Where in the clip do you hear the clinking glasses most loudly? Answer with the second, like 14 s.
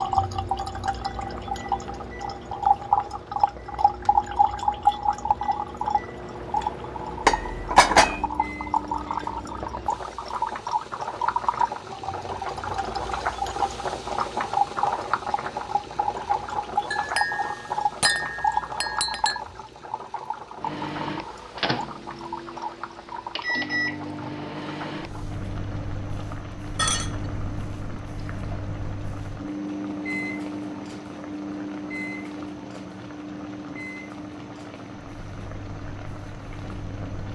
8 s.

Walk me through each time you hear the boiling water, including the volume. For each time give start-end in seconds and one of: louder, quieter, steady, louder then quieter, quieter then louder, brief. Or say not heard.
0.0-37.3 louder then quieter.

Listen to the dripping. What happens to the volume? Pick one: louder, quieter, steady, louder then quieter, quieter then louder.
quieter.